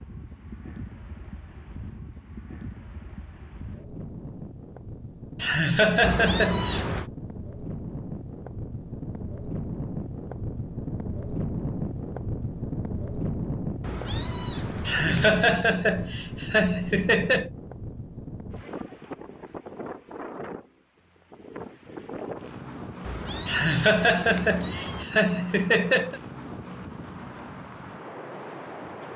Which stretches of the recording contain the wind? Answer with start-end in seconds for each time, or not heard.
0.0-29.1.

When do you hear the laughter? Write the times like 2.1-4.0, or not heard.
5.3-6.8, 14.8-17.5, 23.4-26.2.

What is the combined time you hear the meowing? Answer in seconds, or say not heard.
5 s.